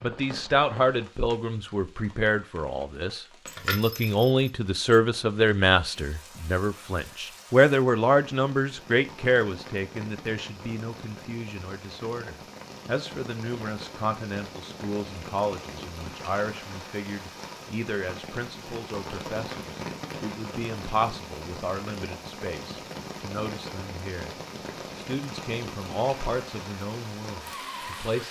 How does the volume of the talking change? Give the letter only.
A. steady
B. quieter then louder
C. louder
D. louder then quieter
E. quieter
E.